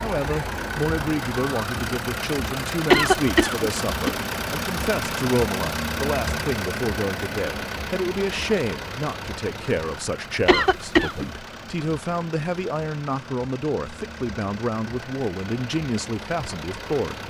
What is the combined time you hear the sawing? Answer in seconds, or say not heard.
not heard.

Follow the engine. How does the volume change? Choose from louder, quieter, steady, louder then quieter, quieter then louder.
quieter.